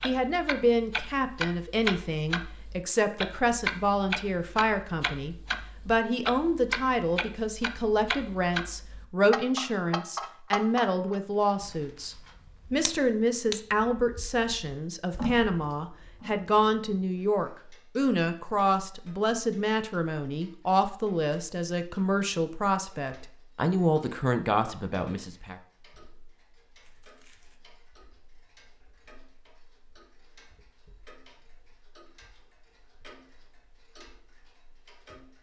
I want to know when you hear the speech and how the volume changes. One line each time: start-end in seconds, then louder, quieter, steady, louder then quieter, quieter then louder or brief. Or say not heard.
0.0-25.6 steady.